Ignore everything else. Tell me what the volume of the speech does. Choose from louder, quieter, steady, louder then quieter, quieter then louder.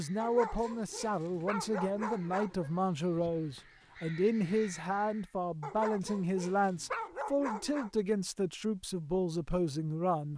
steady.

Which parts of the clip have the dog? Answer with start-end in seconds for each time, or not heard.
0.1-2.8, 5.6-7.9.